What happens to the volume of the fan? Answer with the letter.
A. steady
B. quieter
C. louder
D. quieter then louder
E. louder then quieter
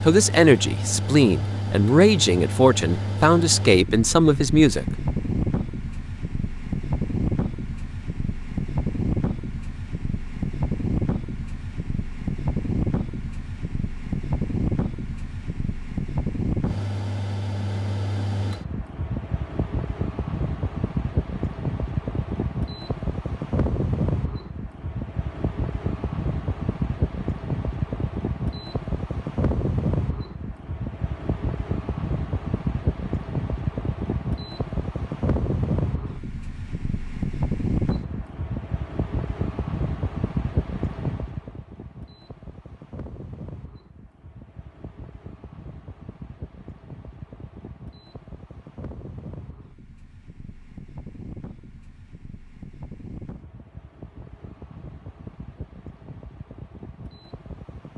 B.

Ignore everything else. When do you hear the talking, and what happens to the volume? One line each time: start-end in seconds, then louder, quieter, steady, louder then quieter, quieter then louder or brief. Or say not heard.
0.0-4.8 steady.